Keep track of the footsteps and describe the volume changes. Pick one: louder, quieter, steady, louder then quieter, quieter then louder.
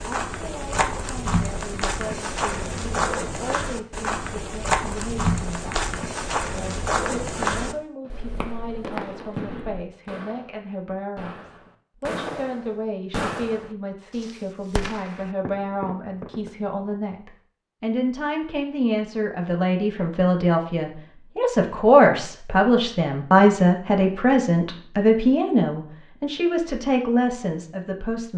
steady.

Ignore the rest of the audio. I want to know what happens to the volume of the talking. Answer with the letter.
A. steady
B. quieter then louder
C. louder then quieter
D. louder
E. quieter
D.